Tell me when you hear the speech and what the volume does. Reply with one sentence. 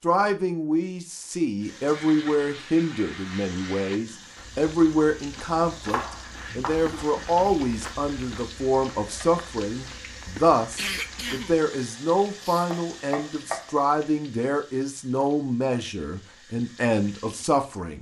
The speech can be heard from 0.0 to 17.9 s, at a steady volume.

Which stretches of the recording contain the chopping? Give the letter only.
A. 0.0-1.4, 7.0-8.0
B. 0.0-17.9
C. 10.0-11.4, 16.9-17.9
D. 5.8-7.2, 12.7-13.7
D.